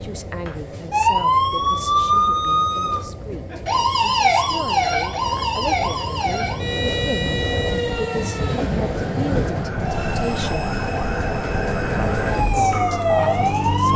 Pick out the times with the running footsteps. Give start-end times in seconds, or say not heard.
not heard.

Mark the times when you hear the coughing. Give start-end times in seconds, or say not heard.
not heard.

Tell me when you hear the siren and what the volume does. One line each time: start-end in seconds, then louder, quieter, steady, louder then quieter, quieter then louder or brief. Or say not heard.
0.0-13.9 quieter then louder.